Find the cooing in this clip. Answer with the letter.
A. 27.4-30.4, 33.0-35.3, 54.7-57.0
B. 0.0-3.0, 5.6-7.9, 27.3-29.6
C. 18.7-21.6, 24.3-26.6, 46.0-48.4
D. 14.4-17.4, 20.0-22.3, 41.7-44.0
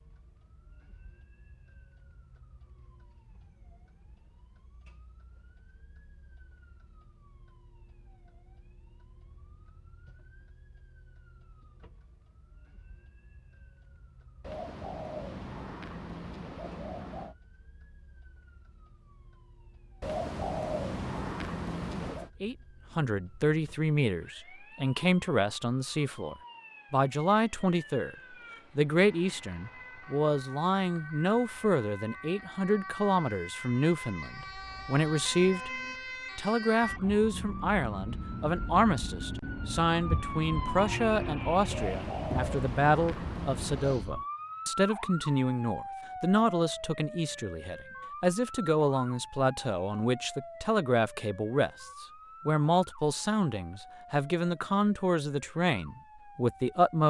D.